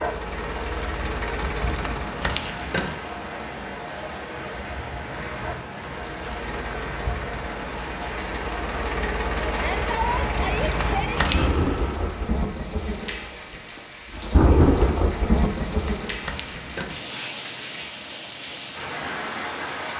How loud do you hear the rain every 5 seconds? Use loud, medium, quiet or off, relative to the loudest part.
medium, medium, loud, loud.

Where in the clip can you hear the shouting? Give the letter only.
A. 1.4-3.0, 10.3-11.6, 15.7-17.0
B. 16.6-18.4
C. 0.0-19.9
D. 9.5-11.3
D.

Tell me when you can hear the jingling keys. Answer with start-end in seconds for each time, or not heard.
1.4-3.0, 10.3-11.6, 15.7-17.0.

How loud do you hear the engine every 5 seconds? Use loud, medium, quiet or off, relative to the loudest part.
loud, loud, loud, off.